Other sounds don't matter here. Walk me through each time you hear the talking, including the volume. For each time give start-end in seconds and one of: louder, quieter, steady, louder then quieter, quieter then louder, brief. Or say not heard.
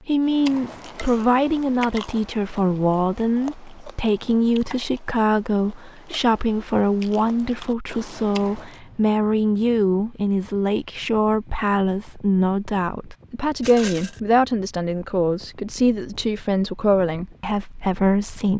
0.1-18.5 steady.